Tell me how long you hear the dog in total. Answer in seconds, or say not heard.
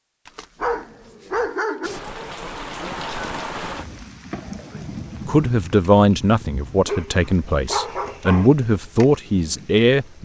3 s.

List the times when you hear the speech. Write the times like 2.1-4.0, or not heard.
5.2-10.2.